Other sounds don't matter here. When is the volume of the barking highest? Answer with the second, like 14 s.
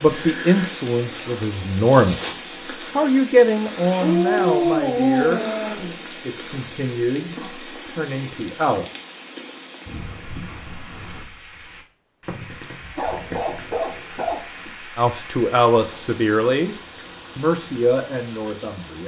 5 s.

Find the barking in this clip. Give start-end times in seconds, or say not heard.
4.0-6.0, 12.9-14.7.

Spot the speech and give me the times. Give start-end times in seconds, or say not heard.
0.0-5.5, 6.2-8.8, 14.9-16.8, 17.4-19.0.